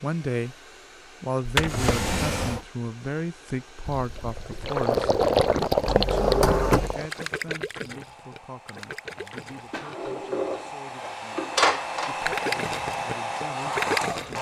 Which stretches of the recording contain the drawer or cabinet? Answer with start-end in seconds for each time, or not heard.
1.4-2.6, 5.8-7.0, 9.7-12.2.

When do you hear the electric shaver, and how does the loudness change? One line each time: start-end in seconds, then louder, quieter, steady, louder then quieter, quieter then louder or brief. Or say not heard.
not heard.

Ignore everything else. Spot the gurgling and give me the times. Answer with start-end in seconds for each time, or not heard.
3.9-9.8, 12.2-14.3.